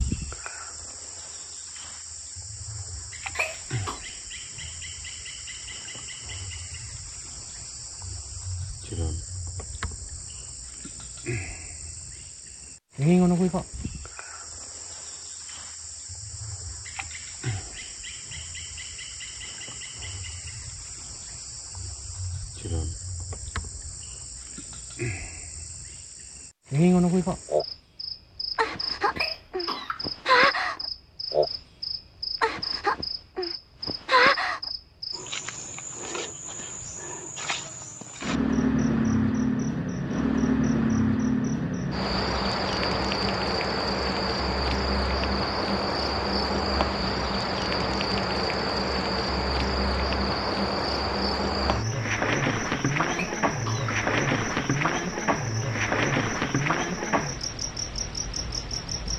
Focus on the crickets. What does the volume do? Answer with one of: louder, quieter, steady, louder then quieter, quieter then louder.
louder.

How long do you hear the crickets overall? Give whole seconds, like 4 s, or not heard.
59 s.